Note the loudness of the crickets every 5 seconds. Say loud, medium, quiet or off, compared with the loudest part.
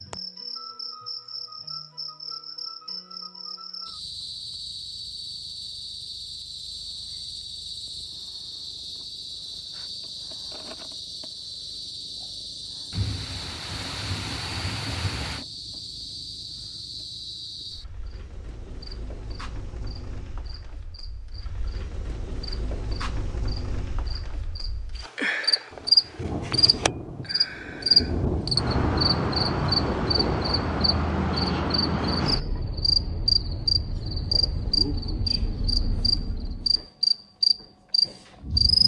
quiet, quiet, quiet, quiet, quiet, loud, loud, loud.